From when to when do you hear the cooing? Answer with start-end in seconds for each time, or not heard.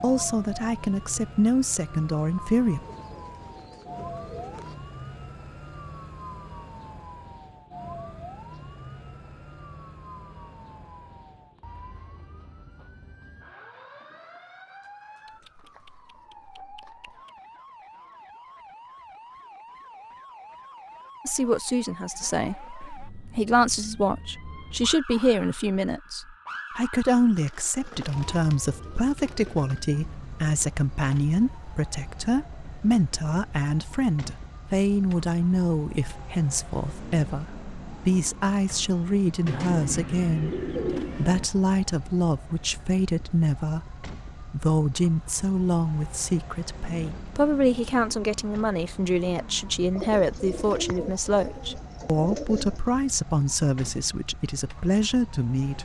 2.8-4.8, 15.2-17.3, 27.4-29.8, 39.5-41.5, 50.0-52.8.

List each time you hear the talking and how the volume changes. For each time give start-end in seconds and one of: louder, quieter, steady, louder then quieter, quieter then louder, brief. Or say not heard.
0.0-2.8 brief
21.2-55.8 steady.